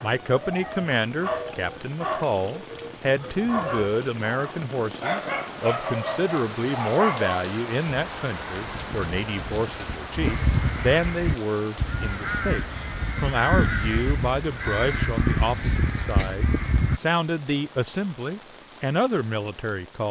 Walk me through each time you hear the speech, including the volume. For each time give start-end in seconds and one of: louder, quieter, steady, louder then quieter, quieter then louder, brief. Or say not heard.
0.0-20.0 steady.